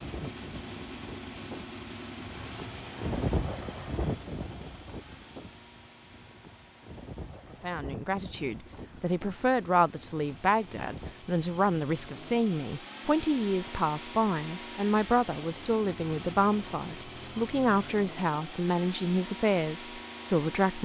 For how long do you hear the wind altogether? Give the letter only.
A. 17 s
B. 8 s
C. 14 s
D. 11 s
D.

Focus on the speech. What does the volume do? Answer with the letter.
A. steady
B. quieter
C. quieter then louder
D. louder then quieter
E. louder
A.